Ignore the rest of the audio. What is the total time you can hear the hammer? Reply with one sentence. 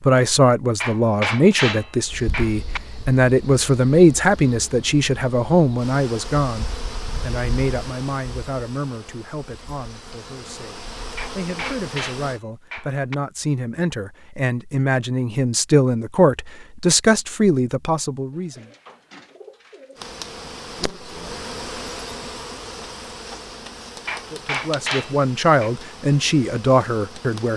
The hammer can be heard for 6 seconds in total.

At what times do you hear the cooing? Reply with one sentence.
You can hear the cooing from 18.3 to 20.1 s.